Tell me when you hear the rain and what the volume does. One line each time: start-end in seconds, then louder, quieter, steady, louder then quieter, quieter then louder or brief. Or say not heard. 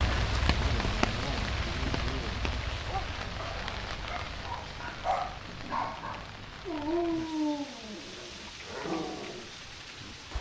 0.0-10.3 quieter.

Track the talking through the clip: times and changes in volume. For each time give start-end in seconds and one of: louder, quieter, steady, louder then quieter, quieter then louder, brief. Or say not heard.
not heard.